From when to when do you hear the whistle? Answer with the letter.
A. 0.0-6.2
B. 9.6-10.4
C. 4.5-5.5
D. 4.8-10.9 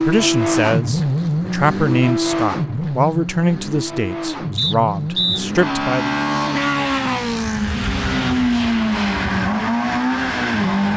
C.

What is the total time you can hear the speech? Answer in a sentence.
You can hear the speech for 6 seconds altogether.